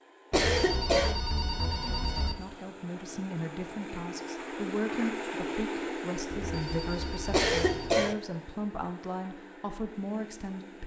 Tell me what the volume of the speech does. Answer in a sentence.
The volume of the speech stays about the same.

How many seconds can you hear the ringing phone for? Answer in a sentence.
You can hear the ringing phone for 4 seconds altogether.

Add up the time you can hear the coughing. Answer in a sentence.
The coughing can be heard for 2 seconds in total.